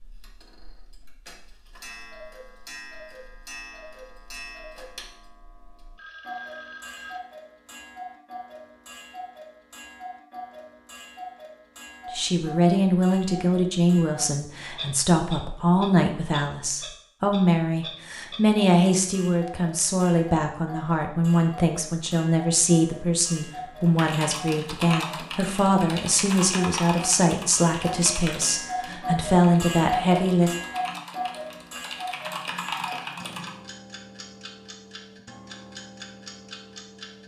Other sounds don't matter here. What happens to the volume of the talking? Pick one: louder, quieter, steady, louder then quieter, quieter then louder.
steady.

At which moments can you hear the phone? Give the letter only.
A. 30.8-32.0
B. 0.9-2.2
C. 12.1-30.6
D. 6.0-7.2
D.